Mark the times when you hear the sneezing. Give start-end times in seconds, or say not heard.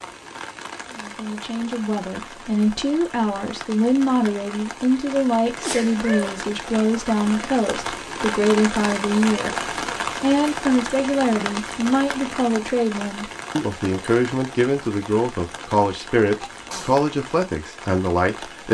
5.5-6.5, 16.4-17.1.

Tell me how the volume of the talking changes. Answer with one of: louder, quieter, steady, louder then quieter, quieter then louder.
steady.